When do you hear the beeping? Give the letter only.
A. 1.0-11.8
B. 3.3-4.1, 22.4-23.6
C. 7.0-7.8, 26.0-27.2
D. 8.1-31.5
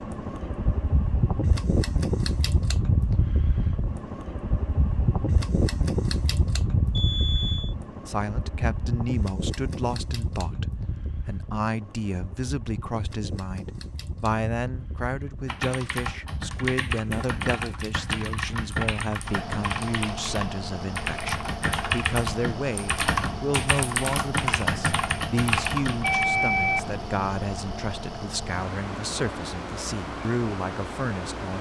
C.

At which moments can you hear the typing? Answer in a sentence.
The typing can be heard from 15.4 to 26.2 s.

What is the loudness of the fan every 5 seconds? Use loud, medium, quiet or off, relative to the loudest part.
loud, loud, medium, medium, medium, medium, medium.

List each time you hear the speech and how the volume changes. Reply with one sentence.
You can hear the speech from 8.1 to 31.5 s, at a steady volume.